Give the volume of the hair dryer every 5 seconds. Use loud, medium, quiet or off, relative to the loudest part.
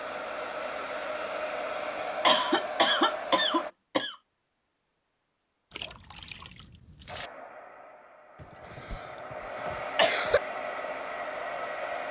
loud, medium, loud.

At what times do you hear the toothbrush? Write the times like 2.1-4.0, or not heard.
not heard.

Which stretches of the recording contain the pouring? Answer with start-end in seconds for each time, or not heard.
5.7-7.3.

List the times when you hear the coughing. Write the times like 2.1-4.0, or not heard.
2.2-4.2, 8.4-10.4.